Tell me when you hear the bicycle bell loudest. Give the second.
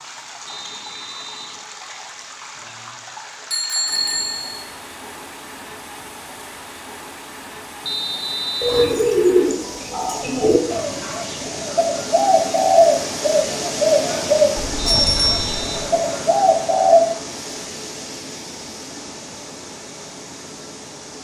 15 s.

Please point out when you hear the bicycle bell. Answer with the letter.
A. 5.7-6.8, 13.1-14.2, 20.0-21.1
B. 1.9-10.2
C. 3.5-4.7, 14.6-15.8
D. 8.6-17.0
C.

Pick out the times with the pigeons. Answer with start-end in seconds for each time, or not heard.
8.6-17.0.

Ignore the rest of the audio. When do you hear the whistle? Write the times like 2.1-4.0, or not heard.
0.5-1.6, 7.8-8.9, 14.8-15.9.